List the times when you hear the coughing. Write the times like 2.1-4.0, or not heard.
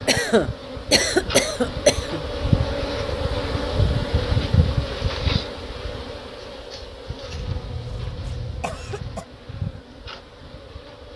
0.1-2.2, 7.3-9.2.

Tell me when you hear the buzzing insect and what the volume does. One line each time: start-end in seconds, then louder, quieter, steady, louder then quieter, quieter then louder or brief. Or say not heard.
0.0-11.1 louder then quieter.